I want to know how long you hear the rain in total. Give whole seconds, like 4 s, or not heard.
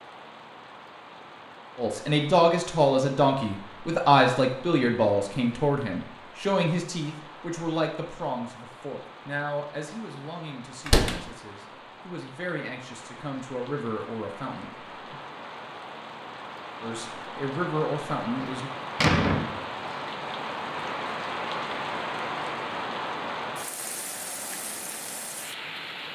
26 s.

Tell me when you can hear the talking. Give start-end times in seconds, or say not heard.
1.8-15.2, 16.8-18.7.